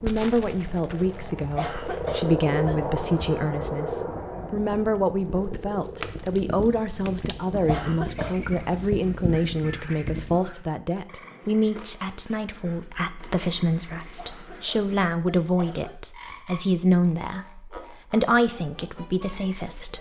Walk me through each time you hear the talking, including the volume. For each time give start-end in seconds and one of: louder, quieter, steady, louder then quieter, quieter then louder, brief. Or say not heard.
0.0-19.9 steady.